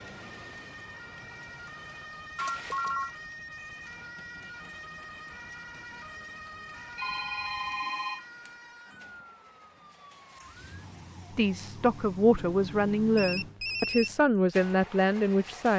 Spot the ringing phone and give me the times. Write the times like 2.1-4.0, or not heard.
2.4-3.1, 7.0-8.5, 13.2-14.2.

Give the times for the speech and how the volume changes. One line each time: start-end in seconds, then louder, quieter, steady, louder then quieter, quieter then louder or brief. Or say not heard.
11.3-15.7 steady.